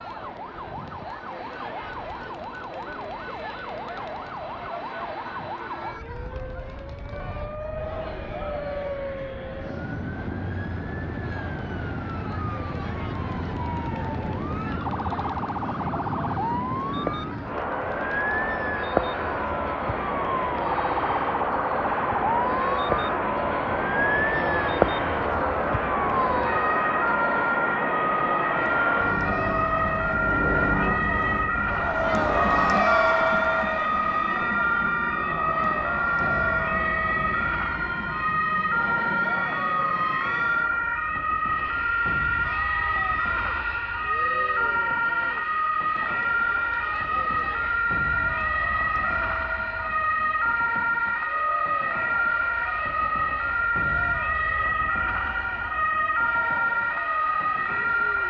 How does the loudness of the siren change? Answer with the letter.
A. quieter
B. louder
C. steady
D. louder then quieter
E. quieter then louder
B.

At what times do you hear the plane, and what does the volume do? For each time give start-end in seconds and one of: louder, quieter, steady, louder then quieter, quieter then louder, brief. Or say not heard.
0.0-58.2 louder then quieter.